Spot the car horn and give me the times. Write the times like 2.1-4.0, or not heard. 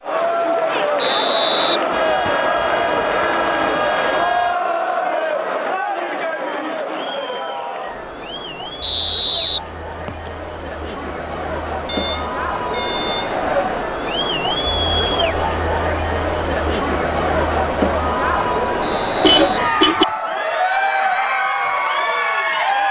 1.9-4.5, 11.8-13.3, 19.2-20.1.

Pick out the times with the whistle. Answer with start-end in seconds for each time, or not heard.
0.9-2.5, 8.8-10.3, 18.8-20.3.